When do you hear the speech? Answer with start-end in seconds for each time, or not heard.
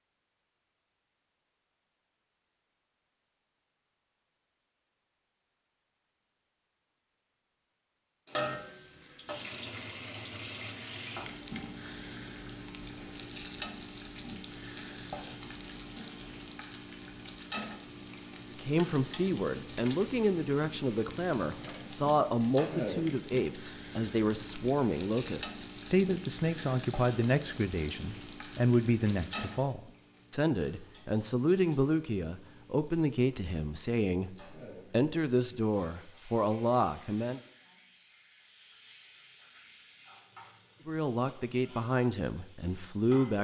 18.6-37.4, 40.9-43.3.